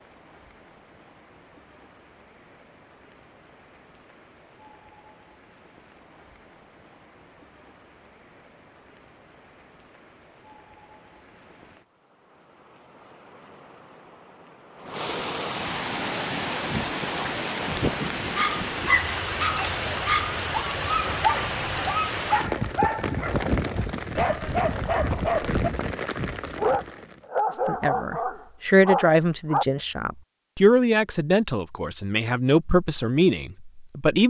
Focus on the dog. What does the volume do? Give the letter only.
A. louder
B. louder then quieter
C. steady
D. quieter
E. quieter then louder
C.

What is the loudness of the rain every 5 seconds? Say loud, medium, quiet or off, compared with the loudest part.
quiet, quiet, quiet, loud, loud, loud, off.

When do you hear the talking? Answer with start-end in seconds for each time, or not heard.
27.6-34.2.